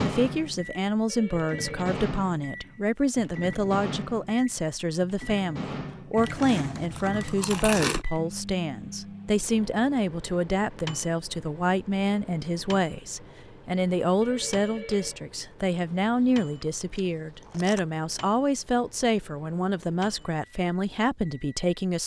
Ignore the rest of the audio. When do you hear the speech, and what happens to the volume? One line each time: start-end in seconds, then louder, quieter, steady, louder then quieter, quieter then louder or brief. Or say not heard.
0.0-22.0 steady.